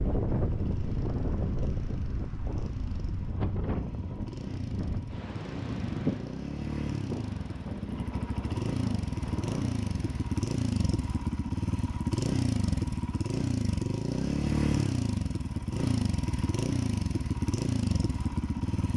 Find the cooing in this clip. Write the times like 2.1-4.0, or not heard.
not heard.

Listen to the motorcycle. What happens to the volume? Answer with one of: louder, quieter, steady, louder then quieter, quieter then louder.
louder.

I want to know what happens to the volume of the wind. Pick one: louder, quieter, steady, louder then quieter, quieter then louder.
quieter.